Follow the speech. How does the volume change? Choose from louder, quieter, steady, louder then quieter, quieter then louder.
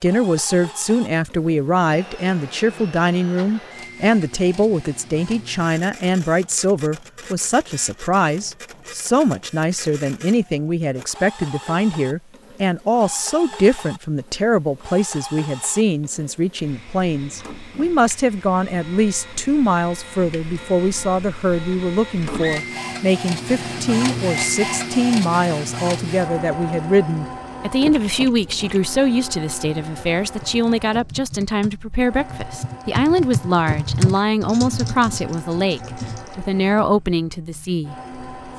steady.